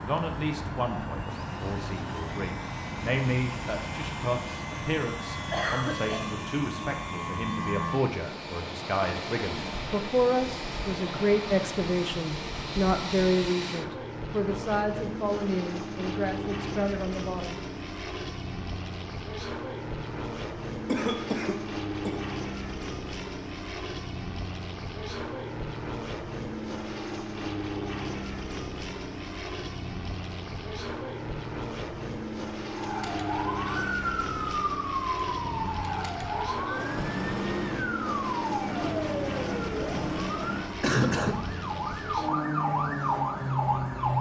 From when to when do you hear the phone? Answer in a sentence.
You can't hear the phone here.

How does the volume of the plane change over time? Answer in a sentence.
The volume of the plane stays about the same.